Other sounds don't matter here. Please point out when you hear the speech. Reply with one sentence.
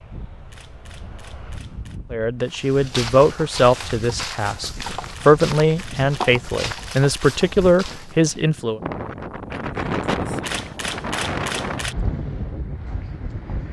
The speech can be heard from 2.1 to 8.8 s.